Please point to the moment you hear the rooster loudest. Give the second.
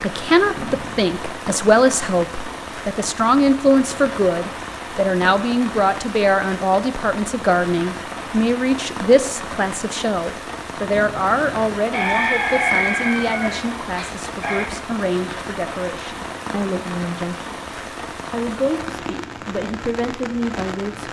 13 s.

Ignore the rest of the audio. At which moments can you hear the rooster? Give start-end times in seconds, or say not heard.
11.9-14.7.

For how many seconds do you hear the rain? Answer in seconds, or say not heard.
21 s.